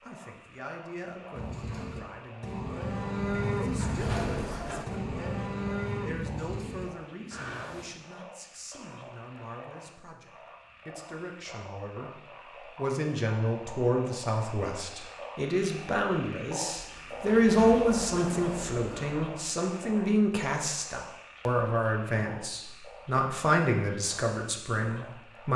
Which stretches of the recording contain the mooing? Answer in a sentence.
You can hear the mooing from 1.3 to 7.9 s.